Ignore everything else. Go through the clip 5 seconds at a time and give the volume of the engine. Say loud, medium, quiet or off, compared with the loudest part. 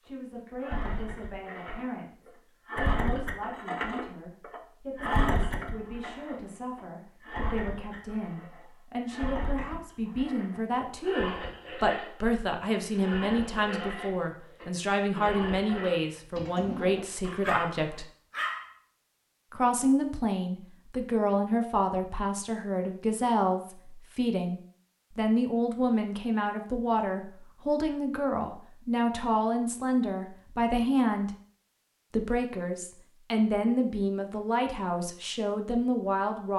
loud, loud, loud, loud, off, off, off, off.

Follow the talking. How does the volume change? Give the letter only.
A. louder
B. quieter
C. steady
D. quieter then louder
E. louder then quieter
A.